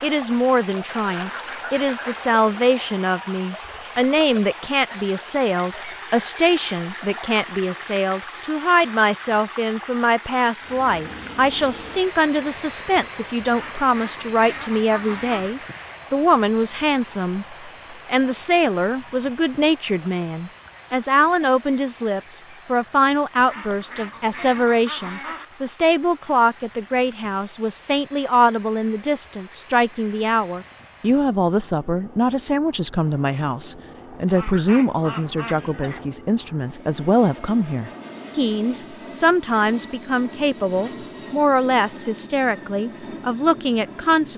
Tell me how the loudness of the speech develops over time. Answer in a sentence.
The volume of the speech stays about the same.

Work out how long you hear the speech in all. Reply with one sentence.
The speech can be heard for 44 seconds in total.